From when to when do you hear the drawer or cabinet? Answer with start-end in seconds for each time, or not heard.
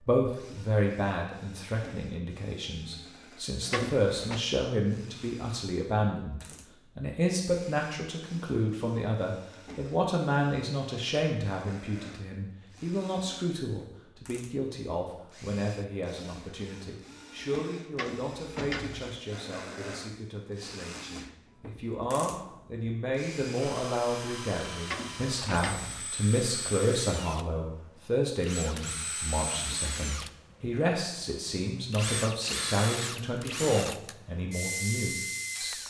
3.7-4.4, 17.9-19.1, 24.9-26.1.